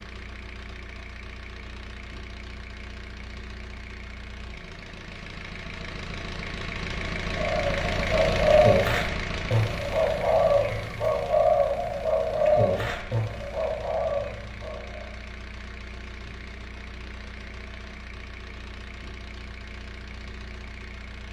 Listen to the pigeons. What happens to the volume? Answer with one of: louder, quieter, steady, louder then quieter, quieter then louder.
quieter.